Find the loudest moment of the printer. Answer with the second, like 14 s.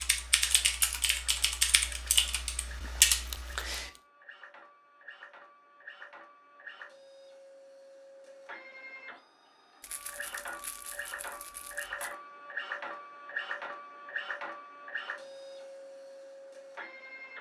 13 s.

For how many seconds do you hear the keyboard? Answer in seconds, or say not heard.
4 s.